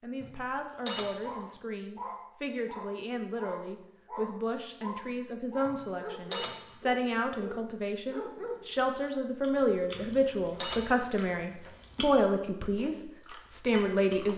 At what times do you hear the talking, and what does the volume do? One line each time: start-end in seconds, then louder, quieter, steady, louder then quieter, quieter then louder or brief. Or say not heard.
0.0-14.3 louder.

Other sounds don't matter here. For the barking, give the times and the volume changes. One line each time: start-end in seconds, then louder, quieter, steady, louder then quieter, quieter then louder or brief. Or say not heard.
1.2-8.7 steady.